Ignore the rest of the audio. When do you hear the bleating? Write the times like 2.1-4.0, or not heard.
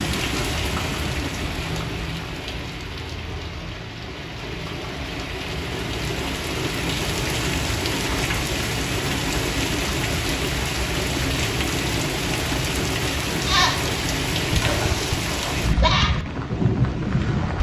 13.4-16.1.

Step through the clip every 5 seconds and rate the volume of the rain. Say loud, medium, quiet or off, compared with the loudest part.
medium, loud, loud, loud.